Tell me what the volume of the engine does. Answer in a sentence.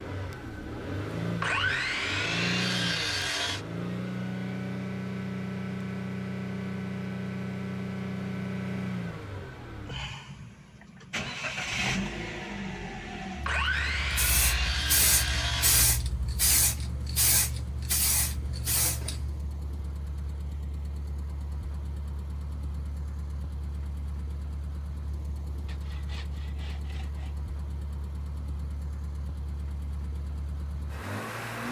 The volume of the engine goes down.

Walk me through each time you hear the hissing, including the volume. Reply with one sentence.
You can hear the hissing from 14.0 to 19.4 s, at a steady volume.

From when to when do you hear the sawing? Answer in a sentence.
The sawing can be heard from 1.4 to 3.6 s, from 13.4 to 15.9 s and from 25.6 to 27.4 s.